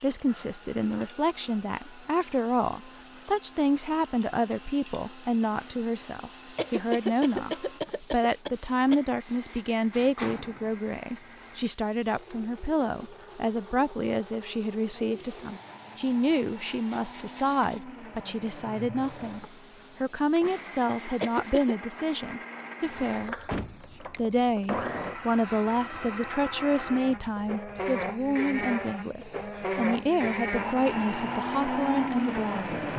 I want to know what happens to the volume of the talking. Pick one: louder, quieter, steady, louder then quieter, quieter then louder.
steady.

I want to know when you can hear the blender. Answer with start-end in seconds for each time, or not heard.
0.0-32.9.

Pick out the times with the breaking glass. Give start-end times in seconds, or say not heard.
not heard.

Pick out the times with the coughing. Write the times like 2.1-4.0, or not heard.
6.5-9.0, 21.2-21.8.